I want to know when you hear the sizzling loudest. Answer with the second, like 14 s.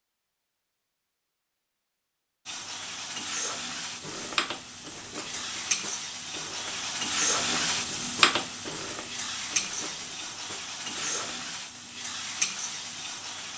8 s.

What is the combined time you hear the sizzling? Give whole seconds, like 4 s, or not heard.
11 s.